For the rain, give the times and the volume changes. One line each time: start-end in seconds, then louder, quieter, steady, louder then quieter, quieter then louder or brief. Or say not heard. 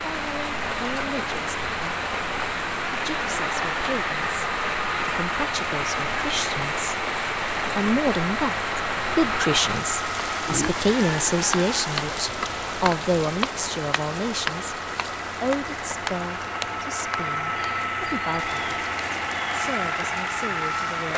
0.0-21.1 quieter.